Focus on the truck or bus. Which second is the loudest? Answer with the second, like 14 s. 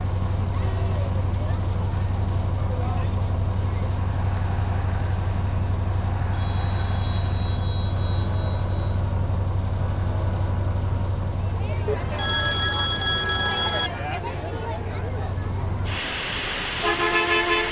17 s.